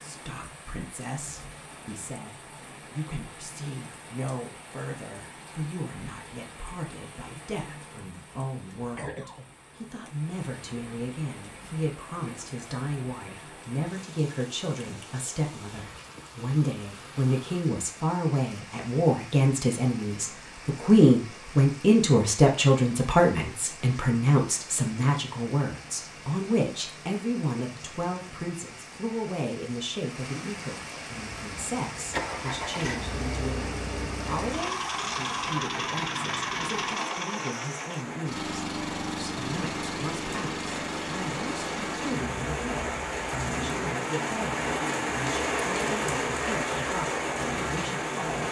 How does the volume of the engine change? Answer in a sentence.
The volume of the engine goes down.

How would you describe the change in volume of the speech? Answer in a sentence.
The loudness of the speech goes up, then down.